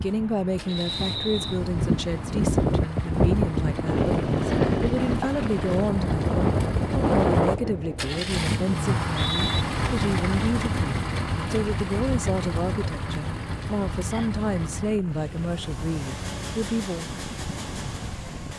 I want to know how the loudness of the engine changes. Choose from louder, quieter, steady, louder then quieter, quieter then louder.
louder then quieter.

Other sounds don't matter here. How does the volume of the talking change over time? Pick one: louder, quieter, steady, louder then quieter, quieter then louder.
steady.